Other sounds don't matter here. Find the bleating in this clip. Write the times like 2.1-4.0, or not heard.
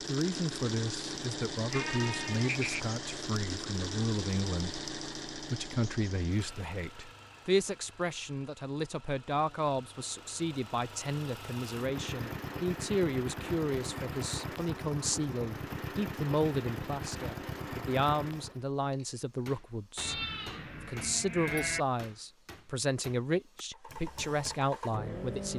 1.7-2.9, 19.9-21.9.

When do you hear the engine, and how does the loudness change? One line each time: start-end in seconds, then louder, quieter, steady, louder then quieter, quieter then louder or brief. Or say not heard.
0.0-18.6 quieter then louder
23.7-25.5 brief.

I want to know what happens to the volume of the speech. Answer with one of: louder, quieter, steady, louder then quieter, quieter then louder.
steady.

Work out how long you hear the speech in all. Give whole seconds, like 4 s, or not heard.
25 s.